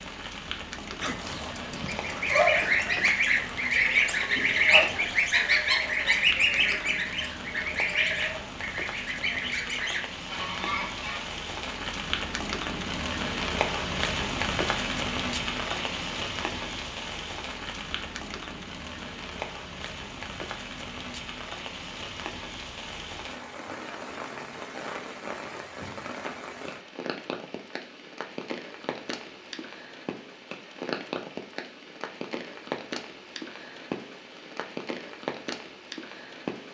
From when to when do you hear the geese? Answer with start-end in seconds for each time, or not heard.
1.9-11.3.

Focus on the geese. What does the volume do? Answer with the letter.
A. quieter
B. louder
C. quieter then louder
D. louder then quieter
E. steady
A.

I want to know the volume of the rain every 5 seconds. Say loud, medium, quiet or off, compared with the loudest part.
medium, medium, loud, loud, medium, medium, medium, medium.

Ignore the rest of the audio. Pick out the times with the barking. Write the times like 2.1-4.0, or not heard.
1.0-2.9.